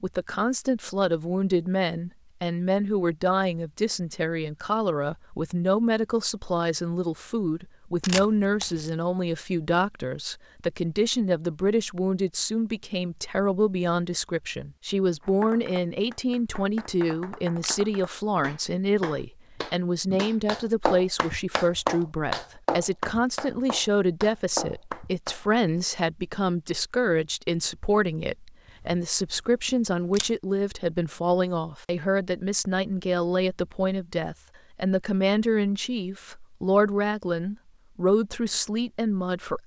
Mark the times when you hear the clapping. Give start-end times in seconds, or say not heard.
15.2-25.5.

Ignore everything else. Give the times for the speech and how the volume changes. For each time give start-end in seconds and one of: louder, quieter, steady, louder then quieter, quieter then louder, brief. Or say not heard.
0.0-39.6 steady.